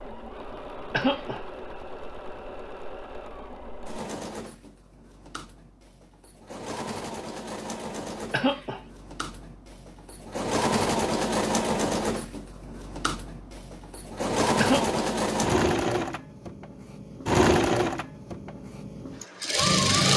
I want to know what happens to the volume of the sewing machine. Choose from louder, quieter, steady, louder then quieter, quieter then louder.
louder.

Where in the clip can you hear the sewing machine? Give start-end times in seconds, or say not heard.
0.0-20.1.